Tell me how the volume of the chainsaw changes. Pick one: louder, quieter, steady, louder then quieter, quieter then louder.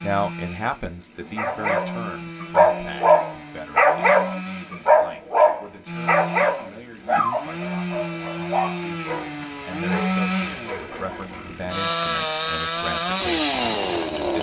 louder.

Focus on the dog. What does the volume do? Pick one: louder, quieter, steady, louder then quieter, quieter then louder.
quieter.